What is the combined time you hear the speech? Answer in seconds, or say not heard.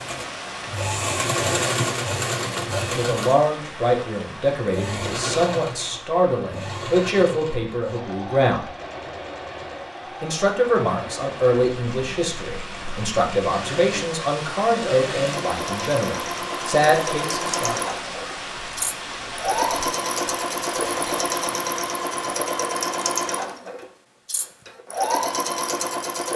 14 s.